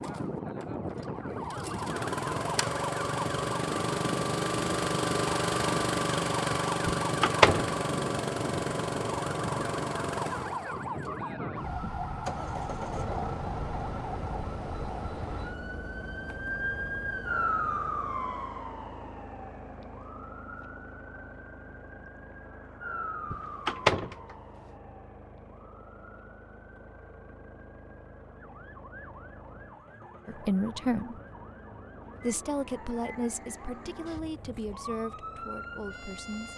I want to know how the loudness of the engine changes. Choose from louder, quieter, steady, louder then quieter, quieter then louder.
quieter.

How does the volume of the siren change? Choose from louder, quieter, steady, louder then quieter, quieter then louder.
quieter.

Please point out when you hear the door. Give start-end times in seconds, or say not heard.
6.8-7.7, 23.3-24.1.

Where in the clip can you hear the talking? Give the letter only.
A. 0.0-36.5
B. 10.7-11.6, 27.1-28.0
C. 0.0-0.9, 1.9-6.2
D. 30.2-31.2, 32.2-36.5
D.